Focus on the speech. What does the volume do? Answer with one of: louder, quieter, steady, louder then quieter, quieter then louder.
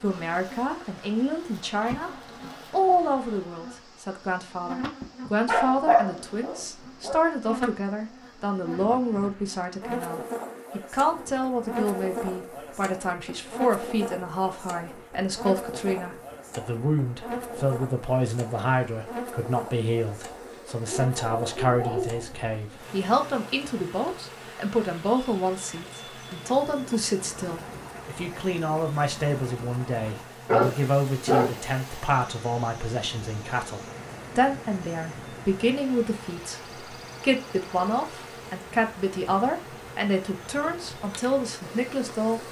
steady.